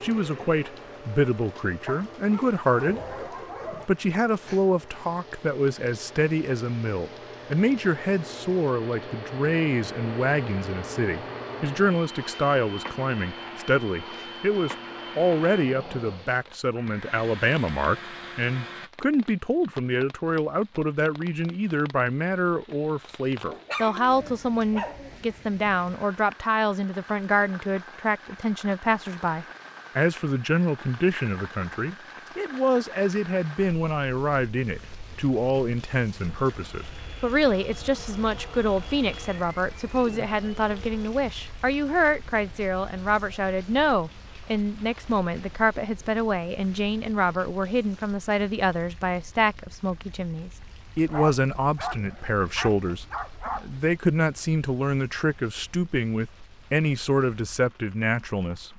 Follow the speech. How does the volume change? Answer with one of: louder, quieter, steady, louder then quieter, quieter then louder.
steady.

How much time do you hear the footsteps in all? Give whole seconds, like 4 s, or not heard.
not heard.